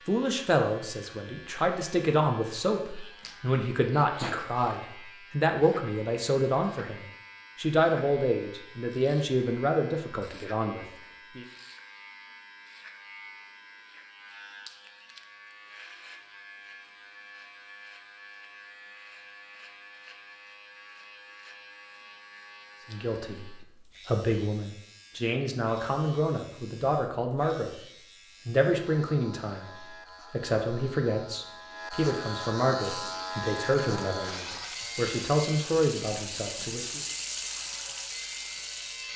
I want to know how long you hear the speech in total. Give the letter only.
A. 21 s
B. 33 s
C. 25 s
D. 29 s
C.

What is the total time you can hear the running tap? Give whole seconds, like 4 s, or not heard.
6 s.